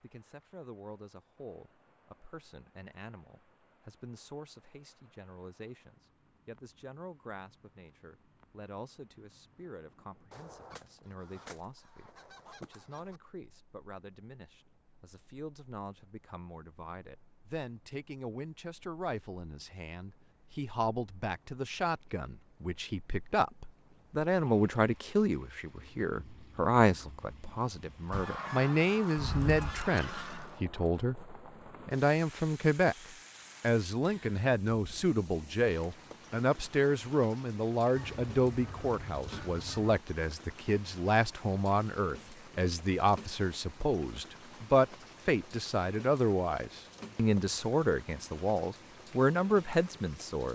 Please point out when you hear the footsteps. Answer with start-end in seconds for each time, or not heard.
not heard.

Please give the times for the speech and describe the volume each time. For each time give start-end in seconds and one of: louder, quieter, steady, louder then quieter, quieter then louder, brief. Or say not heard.
0.0-33.0 louder
33.6-50.4 steady.